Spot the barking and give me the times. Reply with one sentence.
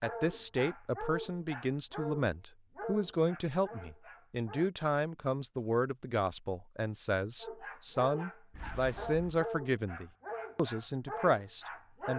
The barking can be heard from 0.0 to 4.7 s and from 7.4 to 12.1 s.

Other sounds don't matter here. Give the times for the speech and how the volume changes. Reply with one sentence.
The speech can be heard from 0.0 to 12.1 s, at a steady volume.